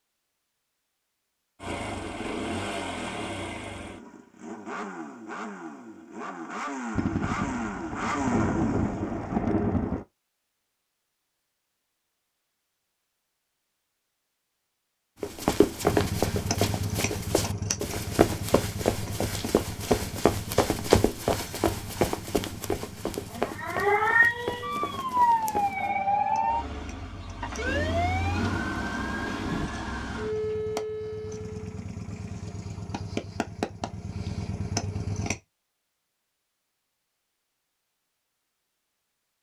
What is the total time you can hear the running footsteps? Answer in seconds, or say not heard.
11 s.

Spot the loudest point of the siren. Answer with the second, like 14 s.
24 s.